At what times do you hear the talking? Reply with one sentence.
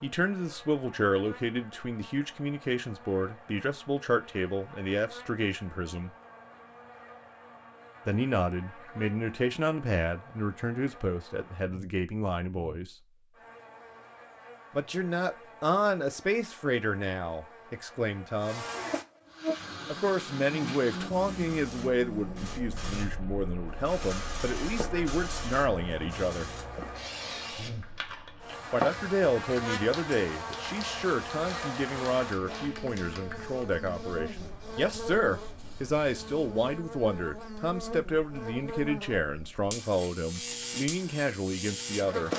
You can hear the talking from 0.0 to 6.1 s, from 8.1 to 12.9 s, from 14.8 to 18.6 s, from 19.9 to 26.5 s and from 28.7 to 42.3 s.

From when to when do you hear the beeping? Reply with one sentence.
You can't hear the beeping here.